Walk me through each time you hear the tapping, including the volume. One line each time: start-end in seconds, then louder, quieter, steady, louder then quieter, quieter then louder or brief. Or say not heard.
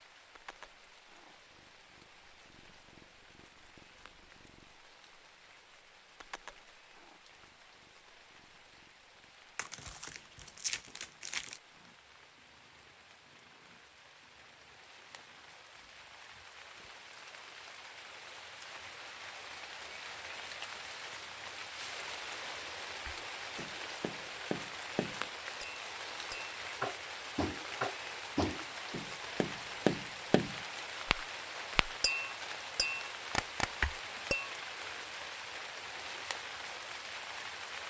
23.1-34.5 louder.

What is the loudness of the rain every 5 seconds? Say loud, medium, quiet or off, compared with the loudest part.
quiet, quiet, quiet, medium, loud, loud, loud, loud.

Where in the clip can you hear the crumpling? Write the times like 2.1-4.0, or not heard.
9.6-11.6.